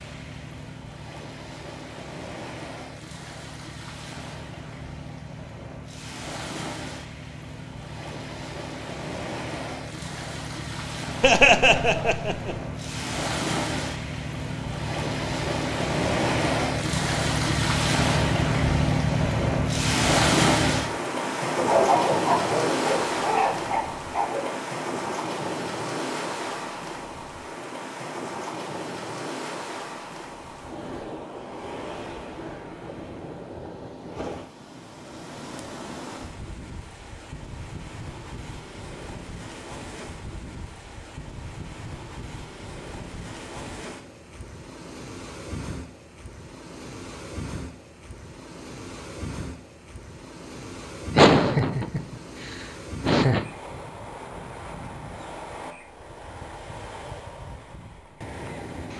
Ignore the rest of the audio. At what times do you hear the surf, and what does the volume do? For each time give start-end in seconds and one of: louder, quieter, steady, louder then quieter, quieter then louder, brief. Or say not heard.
0.0-58.9 louder then quieter.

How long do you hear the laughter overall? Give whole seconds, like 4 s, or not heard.
4 s.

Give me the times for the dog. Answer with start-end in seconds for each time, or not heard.
21.6-24.6.